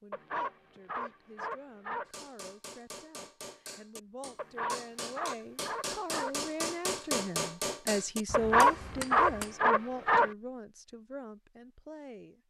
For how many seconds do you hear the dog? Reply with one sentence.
The dog can be heard for 6 seconds in total.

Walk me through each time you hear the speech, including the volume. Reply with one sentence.
You can hear the speech from 0.0 to 12.4 s, getting louder then quieter.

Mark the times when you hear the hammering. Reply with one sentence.
The hammering can be heard from 2.0 to 9.6 s.